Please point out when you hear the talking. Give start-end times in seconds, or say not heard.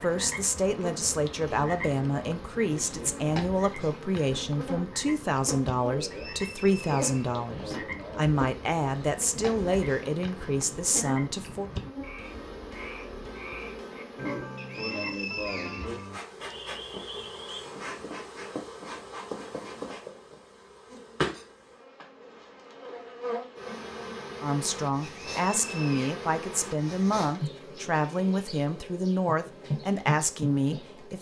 0.0-11.7, 24.4-31.1.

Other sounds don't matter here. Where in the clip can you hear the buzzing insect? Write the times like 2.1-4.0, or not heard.
0.0-31.1.